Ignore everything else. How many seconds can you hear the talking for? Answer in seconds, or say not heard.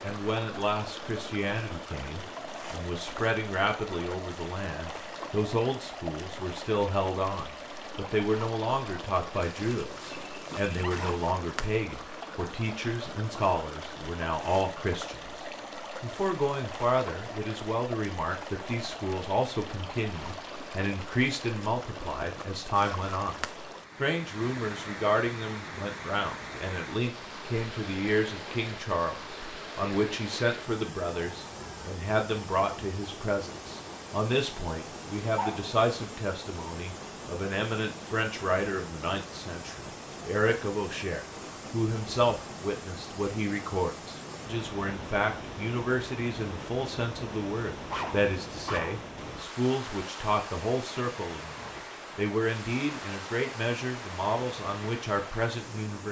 55 s.